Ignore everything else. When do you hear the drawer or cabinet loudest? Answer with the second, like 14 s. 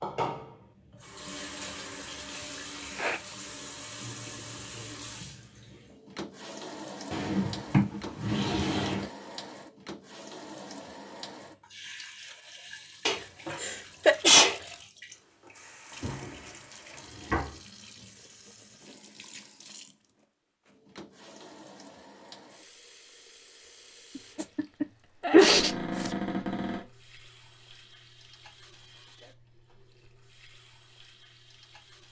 8 s.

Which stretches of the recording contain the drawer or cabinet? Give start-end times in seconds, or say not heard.
7.1-9.1, 15.9-17.6, 25.4-26.9.